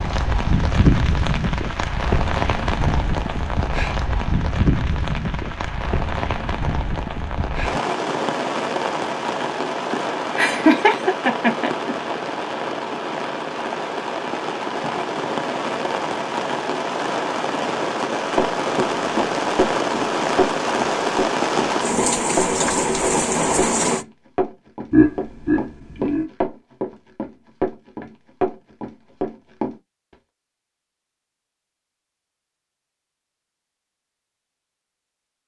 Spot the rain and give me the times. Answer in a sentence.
You can hear the rain from 0.0 to 24.1 s.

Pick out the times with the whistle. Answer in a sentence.
The whistle can't be heard in this clip.